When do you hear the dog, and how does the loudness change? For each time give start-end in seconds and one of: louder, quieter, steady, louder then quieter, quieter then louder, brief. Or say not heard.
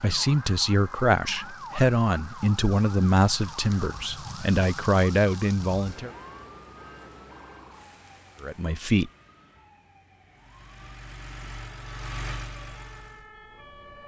not heard.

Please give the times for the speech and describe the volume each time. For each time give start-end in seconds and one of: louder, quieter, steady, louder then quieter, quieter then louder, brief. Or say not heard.
0.0-6.1 steady
8.4-9.1 brief.